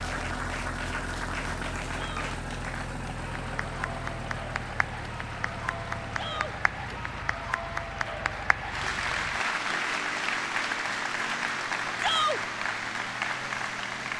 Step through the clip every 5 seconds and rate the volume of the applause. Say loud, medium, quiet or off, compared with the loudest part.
medium, loud, loud.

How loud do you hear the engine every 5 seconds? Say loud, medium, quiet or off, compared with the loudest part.
loud, medium, medium.